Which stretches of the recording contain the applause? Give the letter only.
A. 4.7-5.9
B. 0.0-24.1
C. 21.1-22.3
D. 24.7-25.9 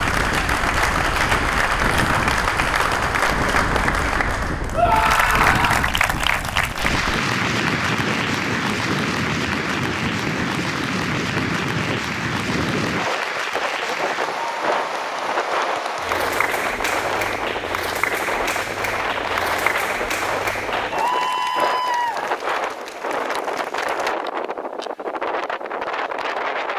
B.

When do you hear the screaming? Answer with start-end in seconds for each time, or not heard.
4.7-5.9.